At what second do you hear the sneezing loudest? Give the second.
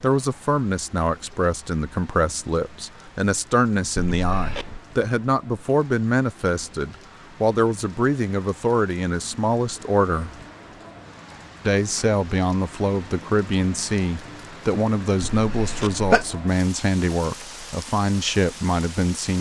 16 s.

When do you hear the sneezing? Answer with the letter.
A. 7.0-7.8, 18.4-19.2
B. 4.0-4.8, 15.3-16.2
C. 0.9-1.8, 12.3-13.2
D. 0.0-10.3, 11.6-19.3
B.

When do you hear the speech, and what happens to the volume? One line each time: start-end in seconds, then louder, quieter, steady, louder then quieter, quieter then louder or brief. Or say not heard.
0.0-10.3 steady
11.6-19.3 steady.